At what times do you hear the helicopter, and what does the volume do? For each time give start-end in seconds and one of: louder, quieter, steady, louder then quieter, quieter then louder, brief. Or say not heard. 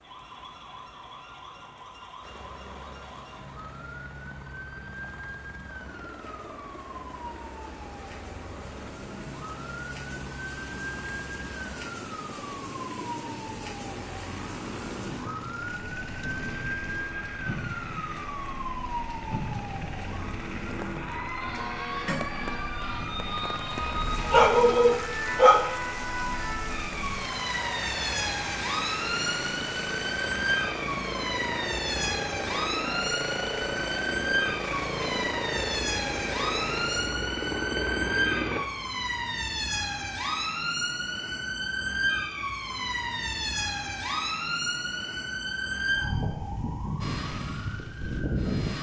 2.2-38.6 louder
47.0-48.7 brief.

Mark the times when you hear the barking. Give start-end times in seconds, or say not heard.
23.8-25.6.